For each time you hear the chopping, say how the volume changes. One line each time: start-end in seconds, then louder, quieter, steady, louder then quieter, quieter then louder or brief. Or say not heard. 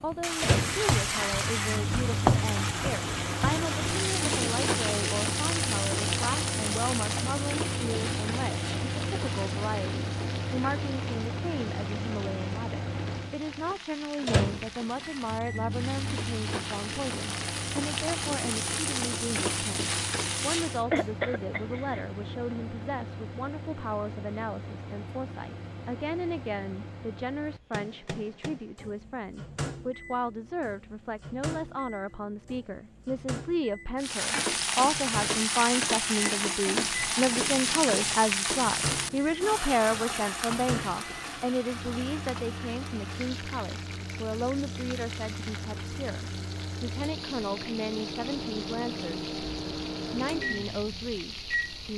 not heard.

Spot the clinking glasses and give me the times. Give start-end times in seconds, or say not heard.
not heard.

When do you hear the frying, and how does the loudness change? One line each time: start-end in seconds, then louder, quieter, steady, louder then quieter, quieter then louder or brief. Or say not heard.
0.0-20.9 quieter then louder
34.0-51.9 quieter.